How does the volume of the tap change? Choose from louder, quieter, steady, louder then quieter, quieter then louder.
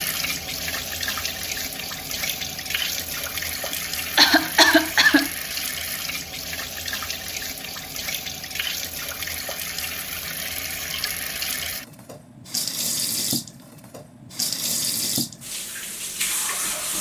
steady.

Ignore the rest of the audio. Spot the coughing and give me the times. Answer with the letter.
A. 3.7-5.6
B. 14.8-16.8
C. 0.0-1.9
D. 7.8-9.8
A.